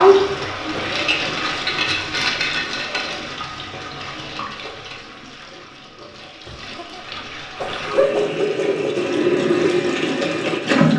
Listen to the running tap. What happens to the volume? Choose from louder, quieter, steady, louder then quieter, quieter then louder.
quieter then louder.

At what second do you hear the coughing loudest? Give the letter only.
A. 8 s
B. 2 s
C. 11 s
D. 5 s
A.